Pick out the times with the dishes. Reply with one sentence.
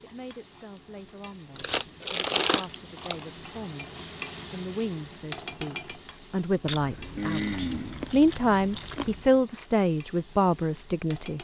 You can't hear the dishes here.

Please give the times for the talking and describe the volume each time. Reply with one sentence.
The talking can be heard from 0.0 to 11.3 s, getting louder.